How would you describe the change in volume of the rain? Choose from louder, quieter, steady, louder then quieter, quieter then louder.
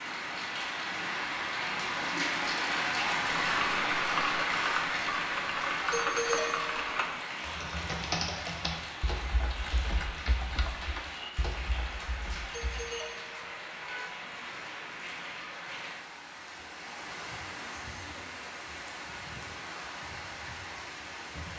quieter.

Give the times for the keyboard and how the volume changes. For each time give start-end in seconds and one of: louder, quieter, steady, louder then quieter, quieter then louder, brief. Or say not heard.
3.4-12.8 quieter.